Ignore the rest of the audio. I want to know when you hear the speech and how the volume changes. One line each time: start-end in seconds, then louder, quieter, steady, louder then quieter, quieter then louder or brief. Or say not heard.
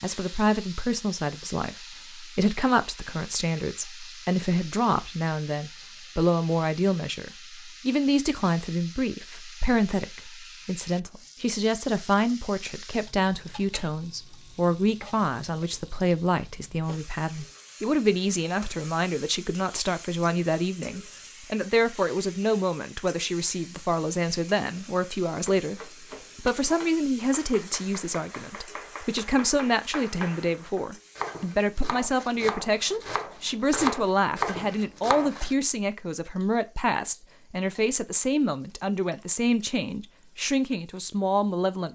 0.0-41.8 steady.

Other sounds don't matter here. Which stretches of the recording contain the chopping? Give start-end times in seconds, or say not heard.
25.4-35.5.